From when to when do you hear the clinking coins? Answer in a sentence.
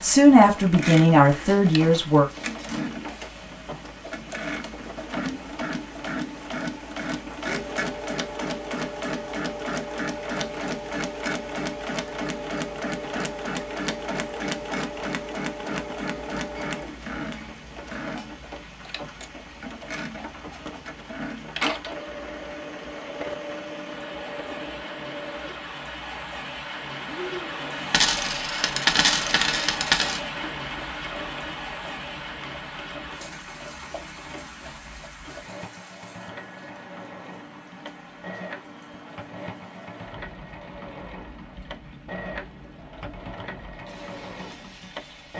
You can hear the clinking coins from 1.3 to 2.8 s and from 27.9 to 30.2 s.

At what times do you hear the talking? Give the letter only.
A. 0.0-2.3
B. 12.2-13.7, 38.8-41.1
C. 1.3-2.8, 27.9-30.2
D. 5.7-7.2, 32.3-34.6
A.